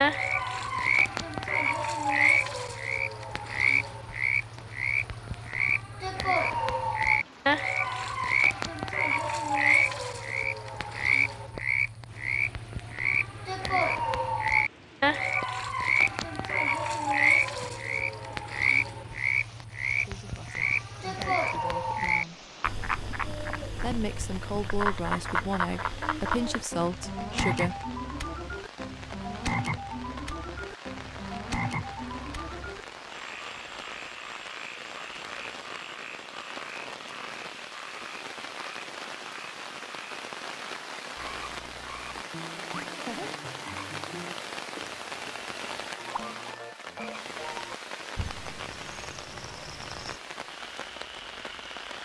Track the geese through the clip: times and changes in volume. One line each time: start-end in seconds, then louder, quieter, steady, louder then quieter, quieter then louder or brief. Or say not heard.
not heard.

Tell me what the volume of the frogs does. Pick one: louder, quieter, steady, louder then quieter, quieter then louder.
quieter.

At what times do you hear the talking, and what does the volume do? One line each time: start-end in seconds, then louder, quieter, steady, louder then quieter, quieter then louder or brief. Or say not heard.
20.0-22.4 brief
23.8-27.8 steady.